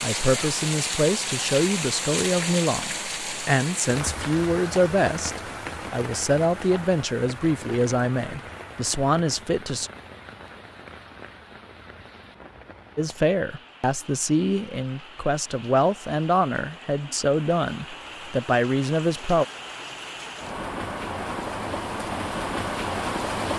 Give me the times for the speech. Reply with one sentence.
The speech can be heard from 0.0 to 9.9 s and from 12.9 to 19.4 s.